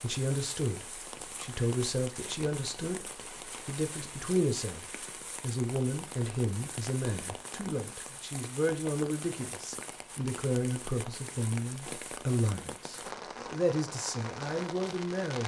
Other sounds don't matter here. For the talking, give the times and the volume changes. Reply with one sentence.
The talking can be heard from 0.0 to 15.4 s, at a steady volume.